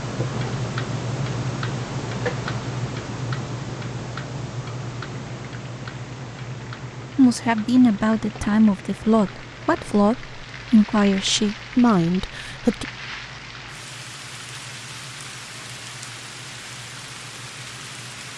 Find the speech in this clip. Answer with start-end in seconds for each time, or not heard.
7.2-12.8.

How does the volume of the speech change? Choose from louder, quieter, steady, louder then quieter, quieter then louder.
steady.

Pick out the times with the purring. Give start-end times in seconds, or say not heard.
not heard.